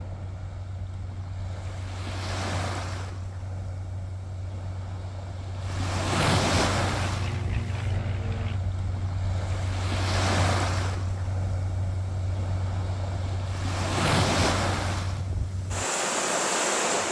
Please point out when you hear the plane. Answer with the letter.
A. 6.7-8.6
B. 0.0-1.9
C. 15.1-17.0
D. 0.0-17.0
A.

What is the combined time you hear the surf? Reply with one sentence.
You can hear the surf for 17 seconds altogether.